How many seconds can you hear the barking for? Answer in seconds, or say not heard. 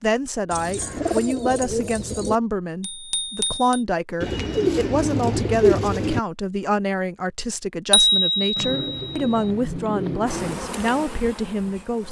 not heard.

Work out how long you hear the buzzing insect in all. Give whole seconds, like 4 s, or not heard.
2 s.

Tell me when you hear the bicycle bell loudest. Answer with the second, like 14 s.
8 s.